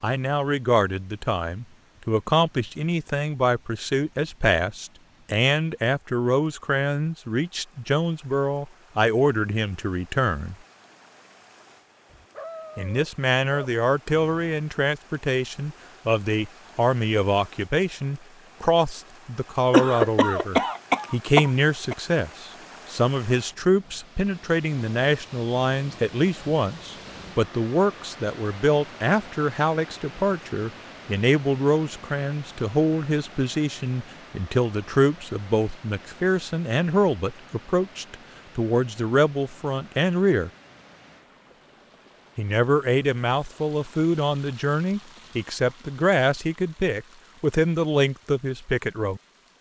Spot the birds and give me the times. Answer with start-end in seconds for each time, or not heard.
not heard.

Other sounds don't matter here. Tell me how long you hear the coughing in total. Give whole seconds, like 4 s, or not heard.
2 s.